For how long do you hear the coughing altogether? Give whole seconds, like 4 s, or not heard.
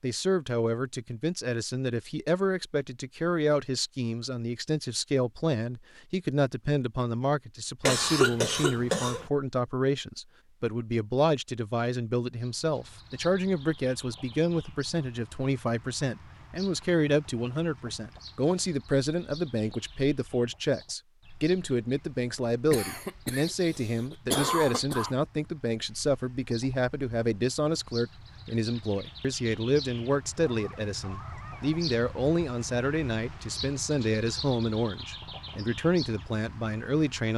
4 s.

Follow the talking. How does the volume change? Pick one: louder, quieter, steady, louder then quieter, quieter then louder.
steady.